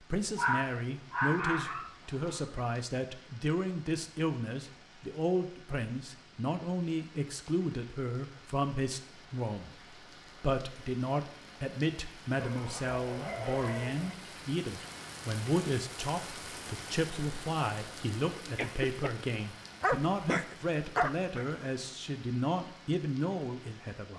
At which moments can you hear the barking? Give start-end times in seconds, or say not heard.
0.3-2.4, 12.3-14.2, 19.8-21.4.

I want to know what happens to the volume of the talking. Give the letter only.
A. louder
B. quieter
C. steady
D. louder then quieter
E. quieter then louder
C.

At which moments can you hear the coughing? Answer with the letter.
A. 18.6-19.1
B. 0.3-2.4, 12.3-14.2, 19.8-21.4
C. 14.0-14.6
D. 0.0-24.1
A.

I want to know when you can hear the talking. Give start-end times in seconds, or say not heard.
0.0-24.1.